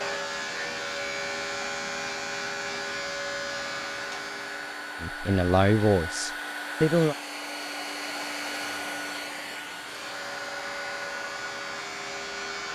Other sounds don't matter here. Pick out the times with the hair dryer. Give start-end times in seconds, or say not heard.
0.0-12.7.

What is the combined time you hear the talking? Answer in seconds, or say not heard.
2 s.